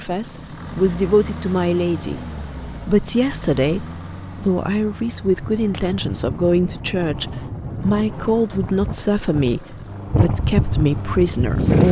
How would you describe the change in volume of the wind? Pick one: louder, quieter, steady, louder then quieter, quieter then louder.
louder.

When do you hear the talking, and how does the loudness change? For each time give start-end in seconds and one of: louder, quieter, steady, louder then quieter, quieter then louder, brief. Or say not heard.
0.0-11.8 steady.